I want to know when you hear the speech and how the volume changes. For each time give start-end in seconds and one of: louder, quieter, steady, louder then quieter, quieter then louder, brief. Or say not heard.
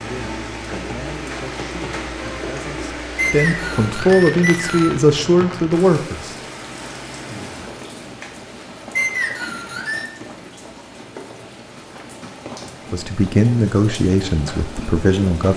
0.0-6.3 louder
12.9-15.5 brief.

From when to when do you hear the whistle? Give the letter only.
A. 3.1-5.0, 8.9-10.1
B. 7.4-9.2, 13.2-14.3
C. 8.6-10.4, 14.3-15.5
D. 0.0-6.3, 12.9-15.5
A.